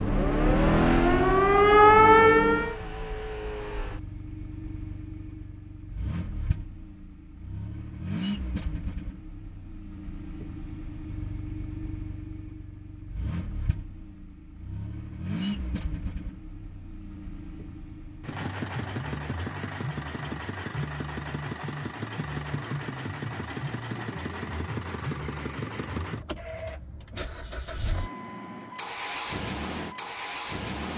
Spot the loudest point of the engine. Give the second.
1 s.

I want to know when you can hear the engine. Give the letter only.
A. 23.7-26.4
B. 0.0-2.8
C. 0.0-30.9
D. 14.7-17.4
C.